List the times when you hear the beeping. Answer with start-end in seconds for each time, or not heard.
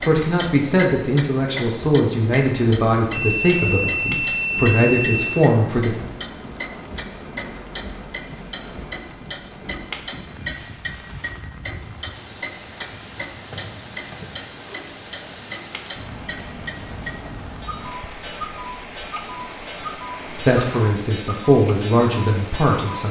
3.1-5.2.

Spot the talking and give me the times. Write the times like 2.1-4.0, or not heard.
0.0-6.0, 20.3-23.0.